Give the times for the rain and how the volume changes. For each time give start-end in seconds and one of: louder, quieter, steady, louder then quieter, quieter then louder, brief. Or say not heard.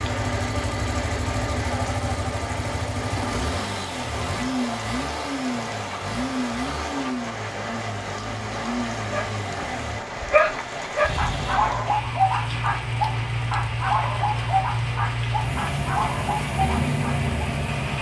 0.0-17.9 steady.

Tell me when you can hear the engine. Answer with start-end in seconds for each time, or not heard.
0.0-17.9.